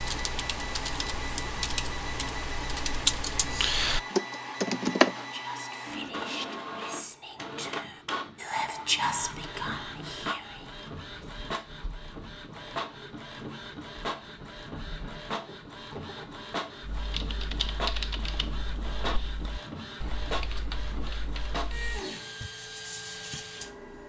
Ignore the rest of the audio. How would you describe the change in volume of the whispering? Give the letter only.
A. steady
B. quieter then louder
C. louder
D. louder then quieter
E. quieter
D.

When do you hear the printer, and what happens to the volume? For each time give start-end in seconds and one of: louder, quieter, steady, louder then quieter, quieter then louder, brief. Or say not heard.
0.0-24.0 steady.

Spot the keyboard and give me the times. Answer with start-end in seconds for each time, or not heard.
0.0-5.2, 16.8-22.5.